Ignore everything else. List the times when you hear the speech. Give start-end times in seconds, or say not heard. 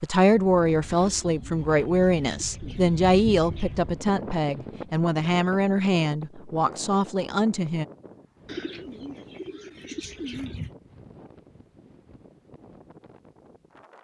0.0-7.8.